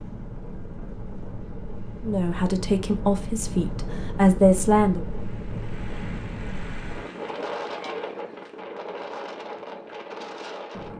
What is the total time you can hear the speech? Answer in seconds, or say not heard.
3 s.